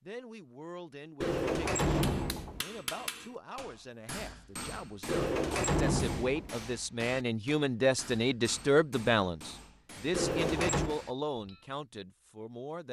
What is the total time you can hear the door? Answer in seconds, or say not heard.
4 s.